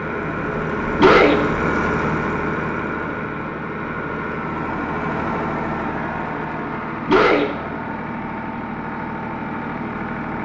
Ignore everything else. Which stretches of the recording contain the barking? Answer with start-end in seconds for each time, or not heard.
0.9-1.6, 7.0-7.7.